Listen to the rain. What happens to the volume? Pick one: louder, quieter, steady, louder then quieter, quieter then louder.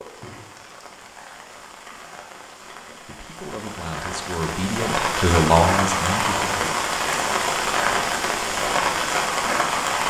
louder.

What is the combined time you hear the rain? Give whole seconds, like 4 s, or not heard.
10 s.